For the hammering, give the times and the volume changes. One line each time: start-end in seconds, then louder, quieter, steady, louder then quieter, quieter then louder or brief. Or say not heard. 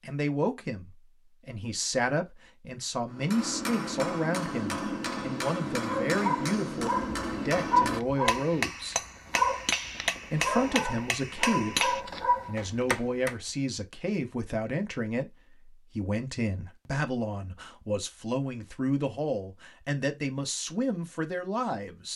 3.1-13.3 steady.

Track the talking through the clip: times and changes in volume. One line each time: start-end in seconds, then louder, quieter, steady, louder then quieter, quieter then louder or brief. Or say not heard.
0.0-8.9 steady
10.3-22.1 steady.